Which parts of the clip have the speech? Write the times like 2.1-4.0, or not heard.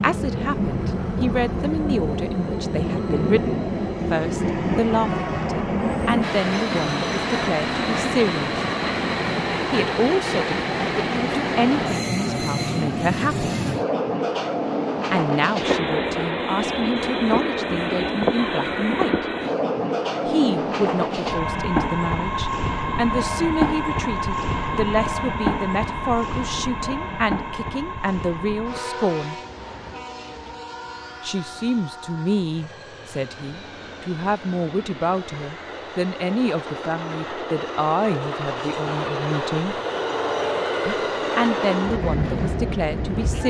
0.0-8.6, 9.7-13.5, 15.1-19.2, 20.2-29.4, 31.2-39.8, 40.9-43.4.